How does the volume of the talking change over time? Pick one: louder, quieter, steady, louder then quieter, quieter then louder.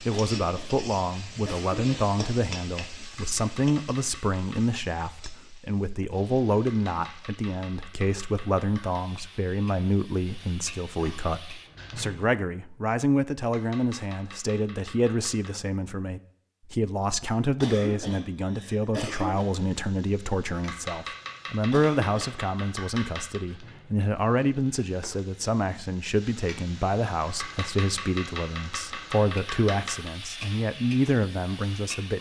steady.